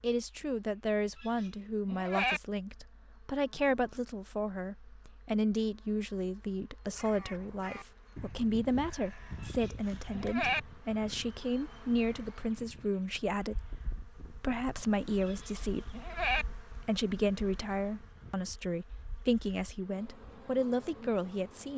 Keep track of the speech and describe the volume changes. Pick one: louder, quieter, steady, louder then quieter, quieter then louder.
steady.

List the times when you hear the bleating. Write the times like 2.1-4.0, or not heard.
1.2-2.4, 9.4-10.6, 15.2-16.4.